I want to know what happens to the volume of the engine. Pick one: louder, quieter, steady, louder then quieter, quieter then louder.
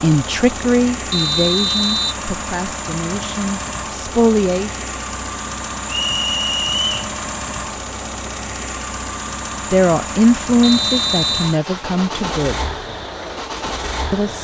steady.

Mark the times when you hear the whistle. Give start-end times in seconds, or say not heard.
1.1-2.2, 5.9-7.0, 10.6-11.6.